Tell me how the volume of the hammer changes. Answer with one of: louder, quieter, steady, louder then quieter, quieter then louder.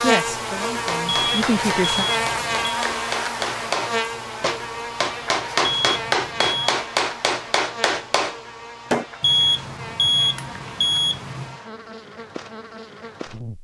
louder.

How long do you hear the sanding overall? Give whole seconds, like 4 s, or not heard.
not heard.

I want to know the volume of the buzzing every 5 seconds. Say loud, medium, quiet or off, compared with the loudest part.
loud, medium, quiet.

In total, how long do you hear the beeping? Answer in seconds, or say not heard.
5 s.